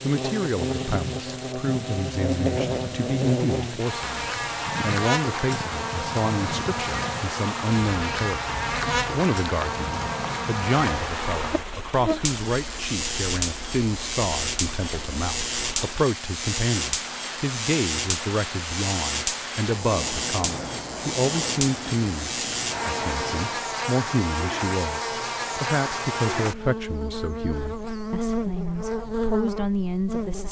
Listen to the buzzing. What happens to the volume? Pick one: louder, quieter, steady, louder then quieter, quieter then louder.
steady.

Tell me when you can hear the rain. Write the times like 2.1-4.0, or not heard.
0.0-23.6.